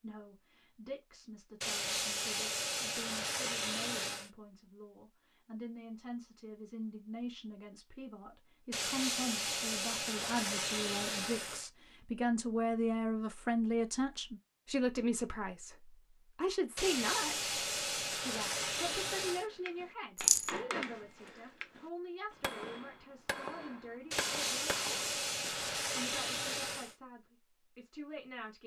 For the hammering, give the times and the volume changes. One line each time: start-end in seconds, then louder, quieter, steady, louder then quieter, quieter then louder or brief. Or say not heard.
19.2-25.3 steady.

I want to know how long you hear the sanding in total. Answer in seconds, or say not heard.
11 s.